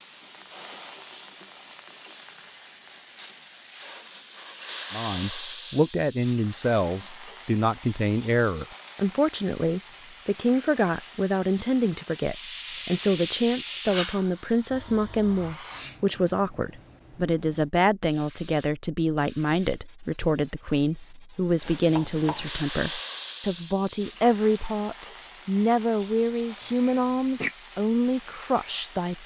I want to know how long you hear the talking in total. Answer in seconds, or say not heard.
24 s.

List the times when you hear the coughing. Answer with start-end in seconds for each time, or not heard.
26.6-27.6.